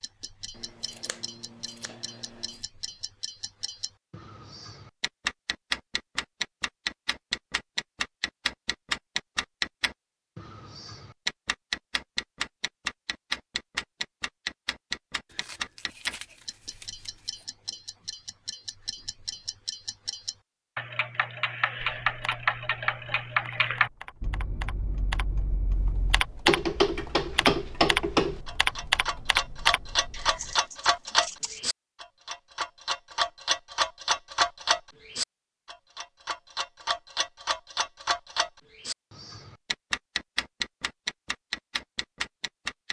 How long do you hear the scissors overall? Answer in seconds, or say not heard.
6 s.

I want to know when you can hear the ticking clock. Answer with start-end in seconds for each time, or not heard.
0.0-42.8.